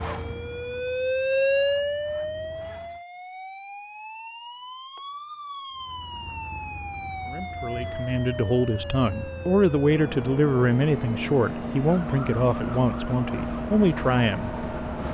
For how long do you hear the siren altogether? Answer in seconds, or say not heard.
15 s.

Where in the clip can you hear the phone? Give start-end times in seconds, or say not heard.
not heard.